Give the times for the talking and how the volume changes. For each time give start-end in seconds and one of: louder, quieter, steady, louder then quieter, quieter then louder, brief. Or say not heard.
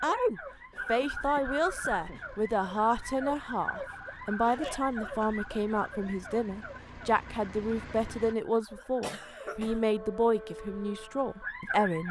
0.0-12.0 steady.